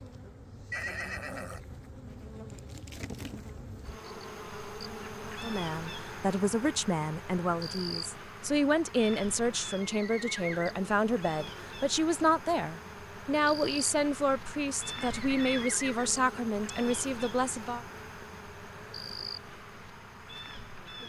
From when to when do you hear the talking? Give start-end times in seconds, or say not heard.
5.4-17.8.